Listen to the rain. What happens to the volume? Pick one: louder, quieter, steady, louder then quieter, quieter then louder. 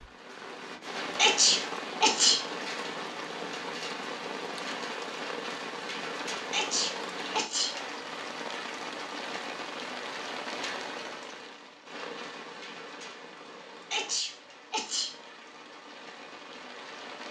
quieter.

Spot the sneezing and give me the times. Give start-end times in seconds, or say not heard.
1.1-2.4, 6.5-7.8, 13.9-15.1.